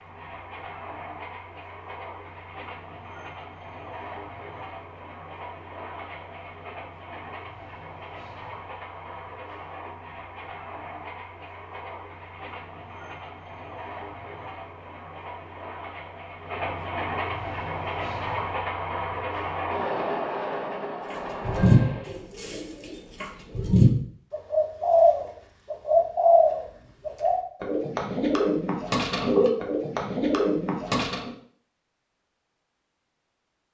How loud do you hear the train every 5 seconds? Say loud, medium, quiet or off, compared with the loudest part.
medium, medium, medium, loud, loud, off, off.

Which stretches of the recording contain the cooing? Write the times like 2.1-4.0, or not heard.
21.1-31.3.